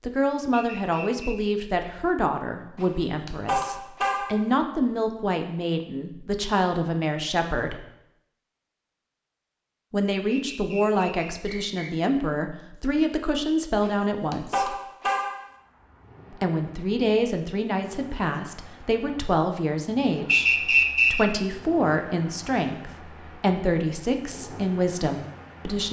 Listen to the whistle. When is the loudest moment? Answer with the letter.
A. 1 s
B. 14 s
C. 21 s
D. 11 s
C.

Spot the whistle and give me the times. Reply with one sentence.
You can hear the whistle from 0.5 to 1.4 s, from 10.3 to 11.9 s and from 20.2 to 21.2 s.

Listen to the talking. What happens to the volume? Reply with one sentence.
The volume of the talking stays about the same.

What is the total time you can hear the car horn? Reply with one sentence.
The car horn can be heard for 3 seconds in total.